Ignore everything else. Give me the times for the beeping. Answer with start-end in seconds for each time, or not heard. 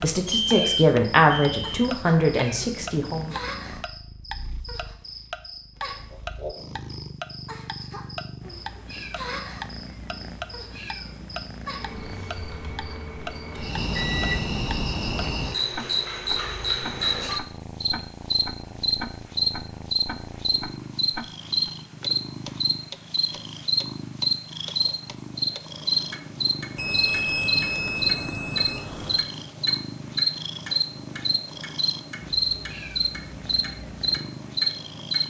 0.2-1.9, 13.9-14.6, 26.8-29.2.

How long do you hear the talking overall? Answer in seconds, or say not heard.
3 s.